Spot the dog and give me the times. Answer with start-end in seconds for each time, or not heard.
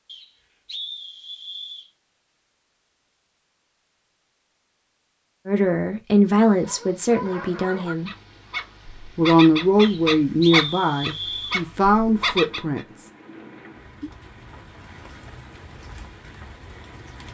6.6-12.8.